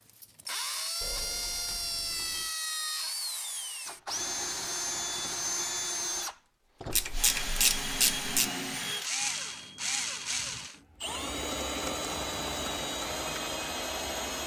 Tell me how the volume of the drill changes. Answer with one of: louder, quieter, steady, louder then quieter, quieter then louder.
steady.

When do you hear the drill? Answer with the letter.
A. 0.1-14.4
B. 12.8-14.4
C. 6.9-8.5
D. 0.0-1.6
A.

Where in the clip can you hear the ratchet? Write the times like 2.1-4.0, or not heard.
6.9-8.5.